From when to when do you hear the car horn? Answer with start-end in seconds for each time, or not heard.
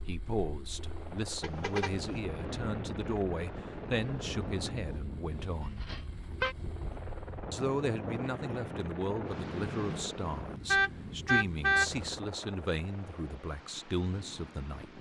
1.4-2.2, 5.8-6.5, 10.7-11.9.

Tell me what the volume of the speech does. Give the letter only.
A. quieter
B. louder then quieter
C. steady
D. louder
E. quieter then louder
C.